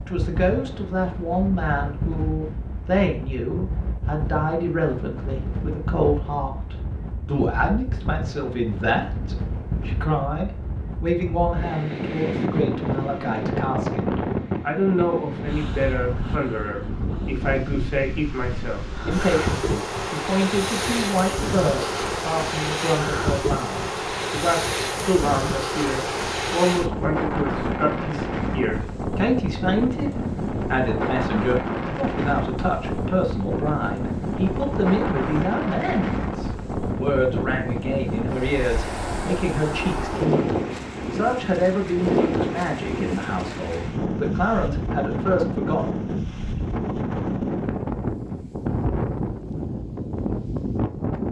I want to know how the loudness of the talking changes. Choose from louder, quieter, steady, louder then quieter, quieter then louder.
steady.